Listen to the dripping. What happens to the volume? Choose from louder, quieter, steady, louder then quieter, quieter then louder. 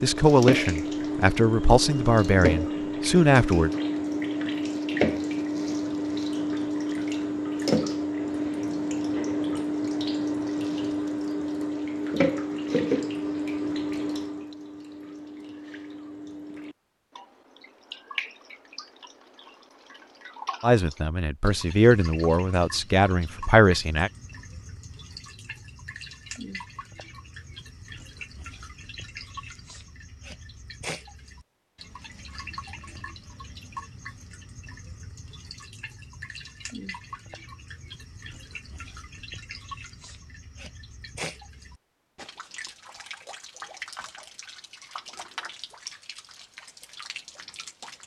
quieter.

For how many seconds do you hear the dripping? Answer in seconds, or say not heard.
48 s.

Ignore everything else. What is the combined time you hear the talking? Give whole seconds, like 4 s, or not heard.
7 s.